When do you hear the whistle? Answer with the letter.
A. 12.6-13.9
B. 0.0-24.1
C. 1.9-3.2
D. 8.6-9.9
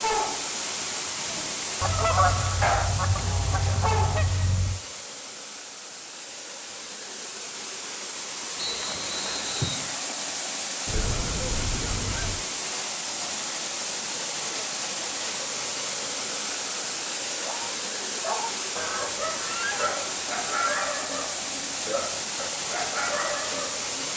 D.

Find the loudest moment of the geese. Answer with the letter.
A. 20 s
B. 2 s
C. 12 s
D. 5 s
B.